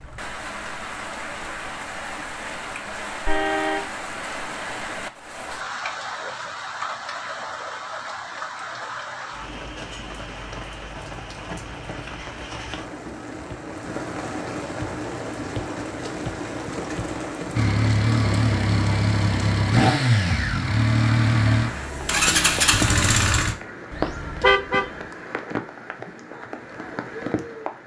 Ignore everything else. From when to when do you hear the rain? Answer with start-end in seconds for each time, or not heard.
0.0-27.8.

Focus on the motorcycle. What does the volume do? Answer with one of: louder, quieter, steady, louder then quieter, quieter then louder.
steady.